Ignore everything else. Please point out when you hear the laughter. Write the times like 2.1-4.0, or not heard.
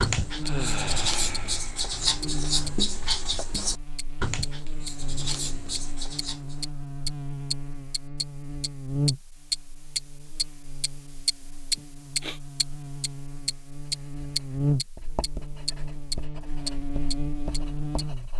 not heard.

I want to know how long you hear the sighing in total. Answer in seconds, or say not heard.
2 s.